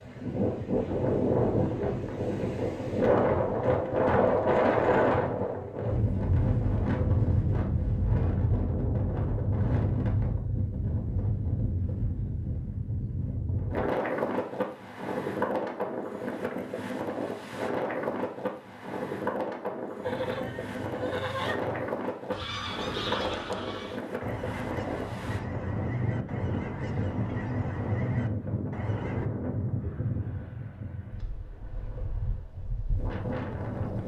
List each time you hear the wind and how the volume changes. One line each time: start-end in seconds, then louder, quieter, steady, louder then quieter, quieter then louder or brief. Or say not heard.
0.0-34.0 quieter.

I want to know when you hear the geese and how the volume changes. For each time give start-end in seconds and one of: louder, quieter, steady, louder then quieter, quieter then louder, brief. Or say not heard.
20.0-29.3 steady.